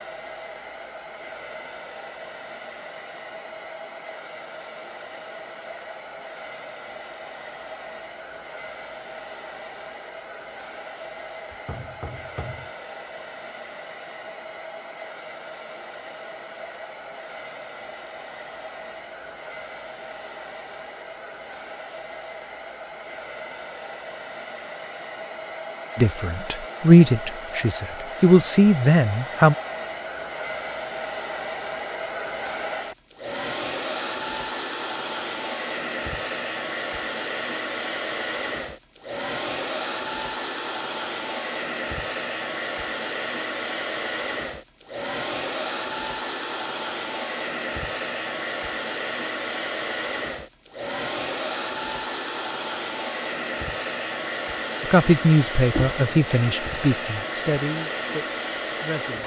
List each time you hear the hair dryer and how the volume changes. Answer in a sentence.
The hair dryer can be heard from 0.0 to 59.2 s, getting louder.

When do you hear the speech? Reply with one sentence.
The speech can be heard from 25.9 to 29.6 s and from 54.8 to 59.2 s.